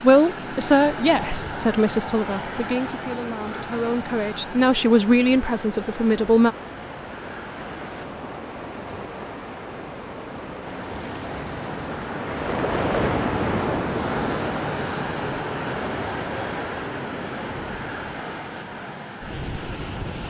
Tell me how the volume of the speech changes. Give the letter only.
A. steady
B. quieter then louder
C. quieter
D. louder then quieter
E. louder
B.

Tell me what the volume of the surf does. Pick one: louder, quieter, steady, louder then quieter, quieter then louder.
louder then quieter.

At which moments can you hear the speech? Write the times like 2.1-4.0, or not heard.
0.0-6.5.